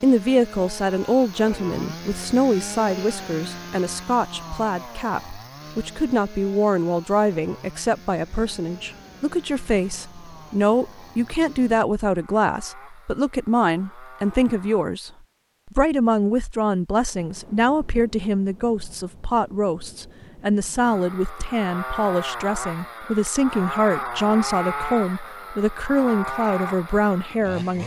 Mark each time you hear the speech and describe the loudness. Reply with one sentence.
You can hear the speech from 0.0 to 27.8 s, at a steady volume.